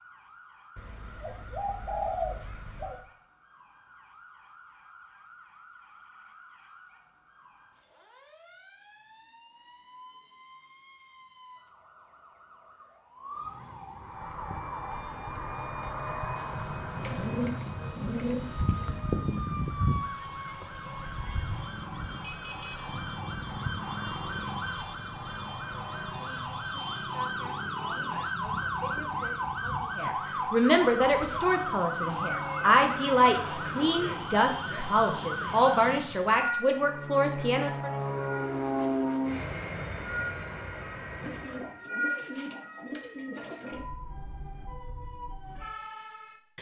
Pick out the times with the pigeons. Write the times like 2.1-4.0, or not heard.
0.8-3.0, 17.0-19.0, 41.2-43.9.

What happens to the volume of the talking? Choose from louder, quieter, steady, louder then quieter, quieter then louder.
louder.